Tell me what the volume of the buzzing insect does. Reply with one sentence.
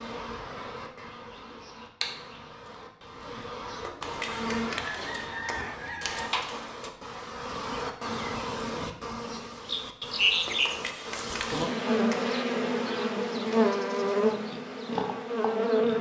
The volume of the buzzing insect goes up.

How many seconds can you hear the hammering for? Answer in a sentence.
You can hear the hammering for 4 seconds altogether.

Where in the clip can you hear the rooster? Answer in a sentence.
You can hear the rooster from 4.2 to 6.3 s.